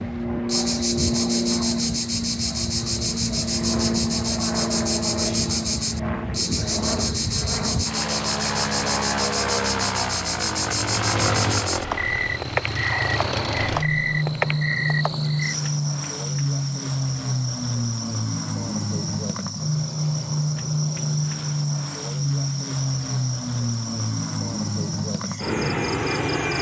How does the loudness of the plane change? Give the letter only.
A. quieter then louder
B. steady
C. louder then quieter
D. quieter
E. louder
B.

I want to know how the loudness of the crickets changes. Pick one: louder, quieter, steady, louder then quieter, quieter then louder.
quieter.